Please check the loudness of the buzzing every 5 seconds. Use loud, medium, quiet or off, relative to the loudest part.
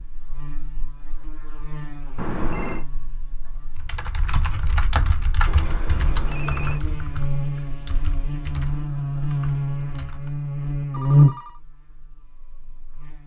quiet, medium, loud.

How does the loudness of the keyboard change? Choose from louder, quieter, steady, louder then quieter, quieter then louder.
quieter.